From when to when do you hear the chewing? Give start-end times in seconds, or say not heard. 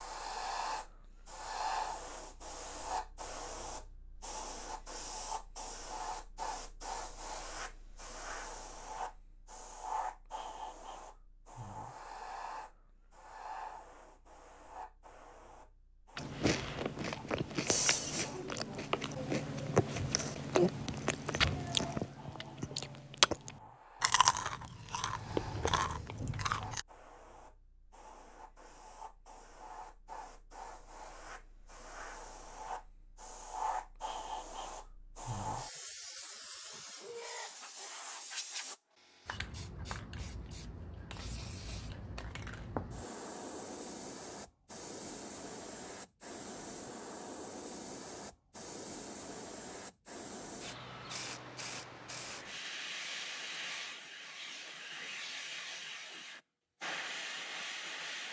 16.1-26.9.